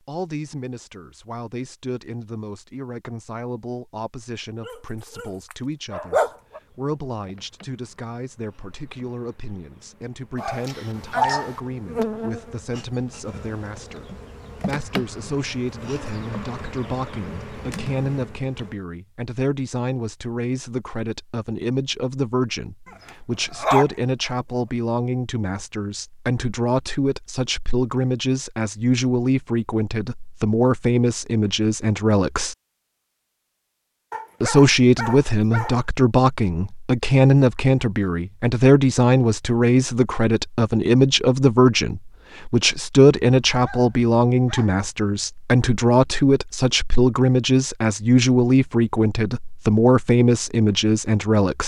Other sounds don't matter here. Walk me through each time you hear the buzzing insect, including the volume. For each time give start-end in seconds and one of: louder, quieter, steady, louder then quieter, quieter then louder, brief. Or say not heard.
6.2-18.8 louder.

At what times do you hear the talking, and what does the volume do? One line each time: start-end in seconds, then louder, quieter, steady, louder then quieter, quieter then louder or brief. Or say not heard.
0.1-32.5 louder
34.4-51.6 steady.